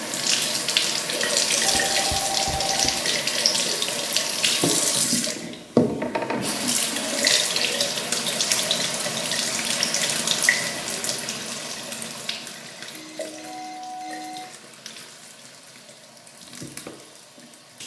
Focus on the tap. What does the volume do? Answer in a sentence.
The loudness of the tap goes down.